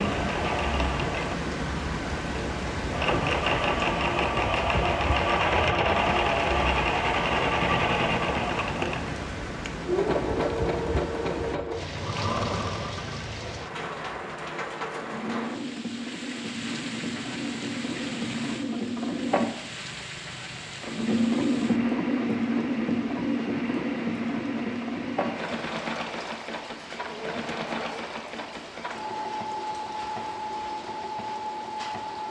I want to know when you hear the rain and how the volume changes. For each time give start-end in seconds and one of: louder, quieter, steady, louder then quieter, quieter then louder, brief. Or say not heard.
0.0-32.2 quieter.